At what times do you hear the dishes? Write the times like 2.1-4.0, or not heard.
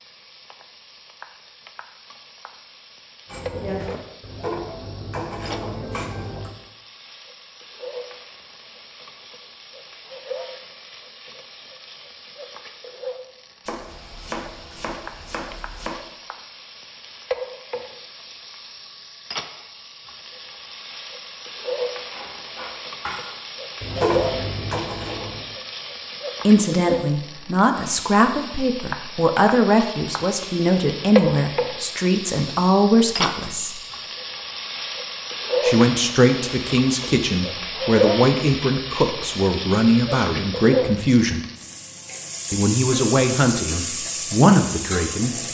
3.2-6.5, 22.1-25.5.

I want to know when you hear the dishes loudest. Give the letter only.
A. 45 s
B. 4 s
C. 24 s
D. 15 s
C.